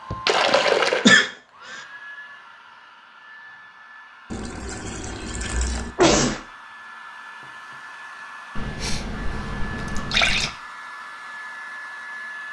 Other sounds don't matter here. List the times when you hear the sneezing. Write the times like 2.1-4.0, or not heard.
0.1-1.3, 6.0-6.4, 8.8-9.5.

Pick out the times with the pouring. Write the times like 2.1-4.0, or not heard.
0.2-1.1, 4.3-5.9, 8.6-10.5.